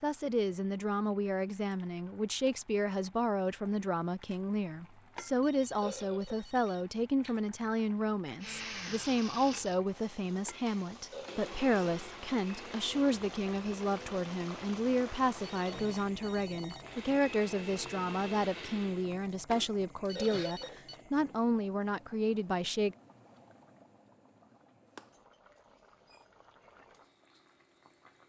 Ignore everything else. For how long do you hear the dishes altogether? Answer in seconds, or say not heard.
not heard.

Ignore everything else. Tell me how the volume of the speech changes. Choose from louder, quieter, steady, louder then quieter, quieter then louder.
steady.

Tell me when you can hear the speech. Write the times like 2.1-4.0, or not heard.
0.0-22.9.